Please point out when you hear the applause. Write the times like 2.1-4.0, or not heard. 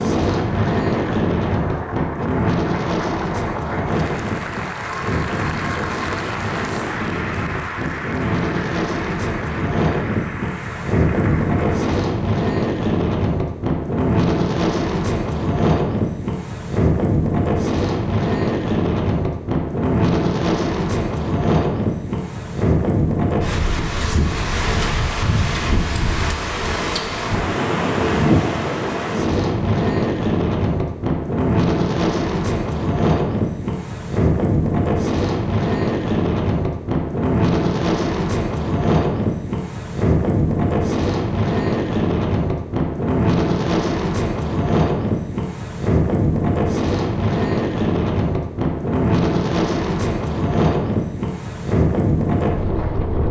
0.0-12.0.